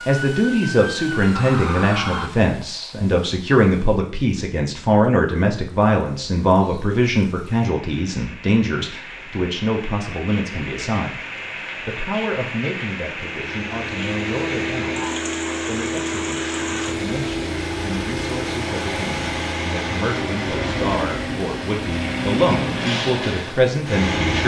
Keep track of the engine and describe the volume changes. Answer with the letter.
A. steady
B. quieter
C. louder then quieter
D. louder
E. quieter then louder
A.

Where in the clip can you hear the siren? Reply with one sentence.
The siren can be heard from 0.0 to 2.3 s.